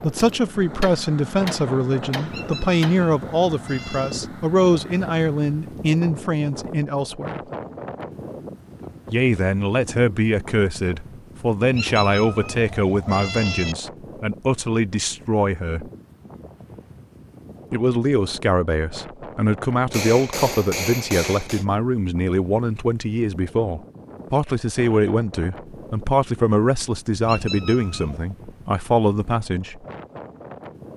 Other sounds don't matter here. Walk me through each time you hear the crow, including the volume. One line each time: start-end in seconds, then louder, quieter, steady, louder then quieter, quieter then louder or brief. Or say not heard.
not heard.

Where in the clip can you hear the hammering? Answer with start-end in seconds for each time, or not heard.
0.8-3.1, 19.9-21.6.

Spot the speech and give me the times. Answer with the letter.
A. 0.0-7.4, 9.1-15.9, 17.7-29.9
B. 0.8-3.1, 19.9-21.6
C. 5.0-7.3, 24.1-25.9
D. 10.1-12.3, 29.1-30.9
A.